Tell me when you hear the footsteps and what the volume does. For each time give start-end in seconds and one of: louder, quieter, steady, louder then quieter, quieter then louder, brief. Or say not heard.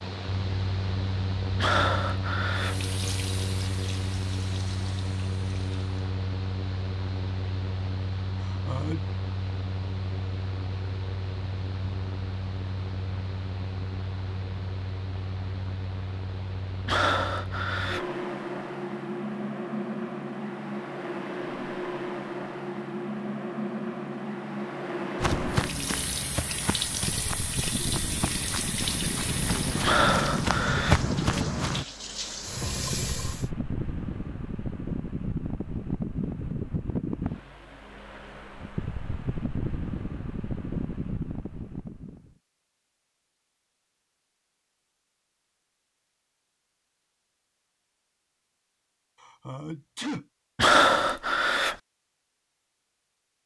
25.1-31.9 quieter then louder.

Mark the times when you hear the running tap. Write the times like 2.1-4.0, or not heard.
2.5-6.0, 25.5-33.5.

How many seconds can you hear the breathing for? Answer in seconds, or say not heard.
5 s.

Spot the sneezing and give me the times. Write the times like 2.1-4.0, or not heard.
8.4-9.1, 49.2-50.2.